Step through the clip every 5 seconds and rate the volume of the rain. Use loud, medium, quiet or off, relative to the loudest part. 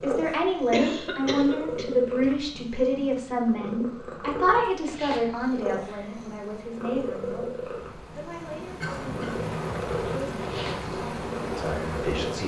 off, medium, loud.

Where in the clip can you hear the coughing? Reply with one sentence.
The coughing can be heard from 0.7 to 2.6 s and from 8.8 to 9.4 s.